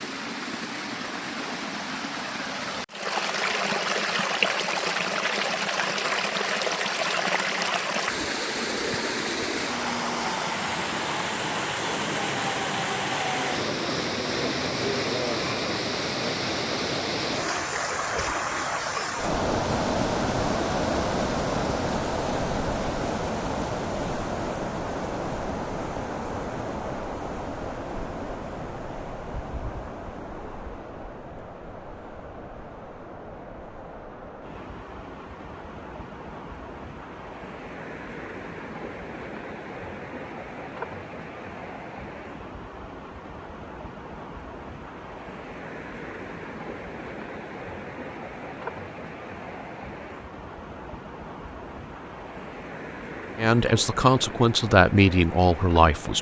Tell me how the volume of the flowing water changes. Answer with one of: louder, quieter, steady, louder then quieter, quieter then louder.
quieter.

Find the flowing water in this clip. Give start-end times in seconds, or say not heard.
0.0-56.1.